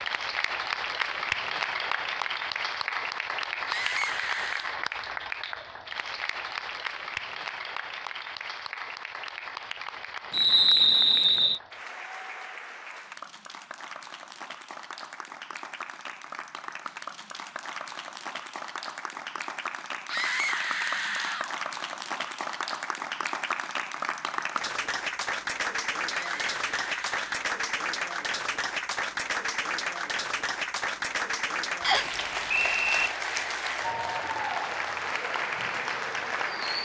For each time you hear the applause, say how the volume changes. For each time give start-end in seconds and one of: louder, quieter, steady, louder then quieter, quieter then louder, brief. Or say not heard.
0.0-36.8 quieter then louder.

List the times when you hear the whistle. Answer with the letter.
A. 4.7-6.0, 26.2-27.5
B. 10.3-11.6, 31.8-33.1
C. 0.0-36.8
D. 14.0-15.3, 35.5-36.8
B.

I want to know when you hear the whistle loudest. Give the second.
11 s.